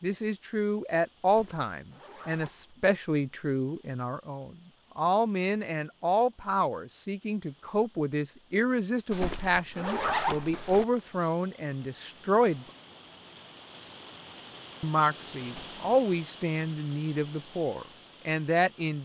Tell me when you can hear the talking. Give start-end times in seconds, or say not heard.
0.0-12.7, 14.8-19.0.